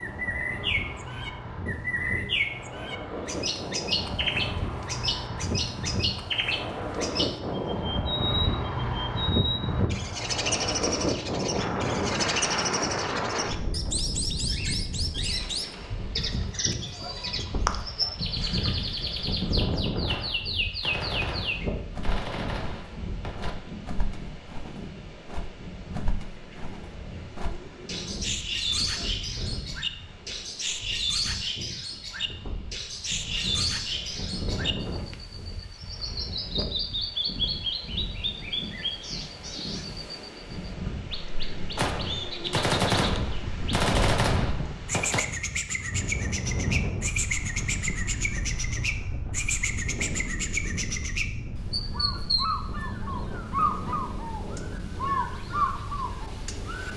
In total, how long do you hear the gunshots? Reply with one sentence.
You can hear the gunshots for 7 seconds altogether.